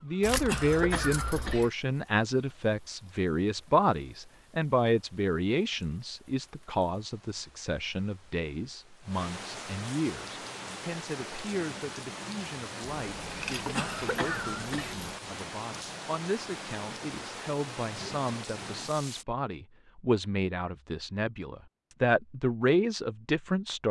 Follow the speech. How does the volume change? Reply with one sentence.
The loudness of the speech goes down, then up.